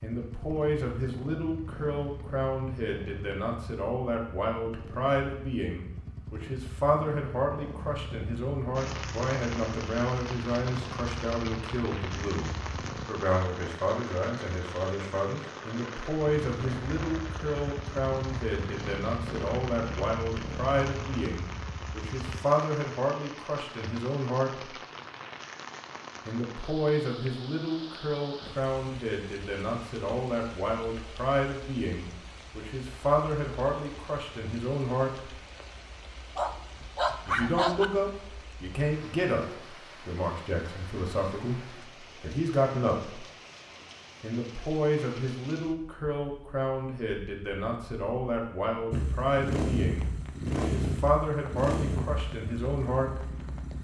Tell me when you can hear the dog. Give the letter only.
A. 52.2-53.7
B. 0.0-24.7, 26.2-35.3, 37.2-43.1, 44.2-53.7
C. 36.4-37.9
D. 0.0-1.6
C.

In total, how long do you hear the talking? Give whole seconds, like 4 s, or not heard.
49 s.